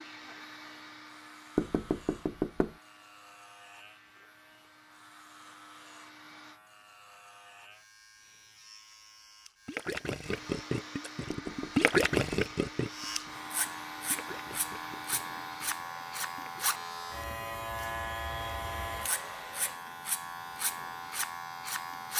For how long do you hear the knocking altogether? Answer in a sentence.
You can hear the knocking for 2 seconds altogether.